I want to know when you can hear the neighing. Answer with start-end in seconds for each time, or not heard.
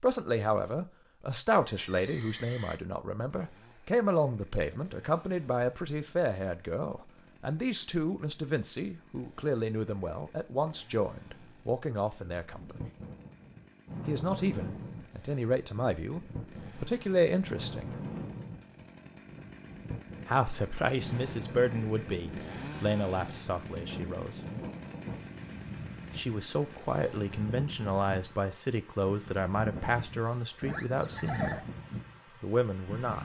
1.6-2.8, 30.6-31.6.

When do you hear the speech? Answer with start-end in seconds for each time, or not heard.
0.0-12.8, 14.1-17.9, 20.2-24.4, 26.1-31.6, 32.4-33.2.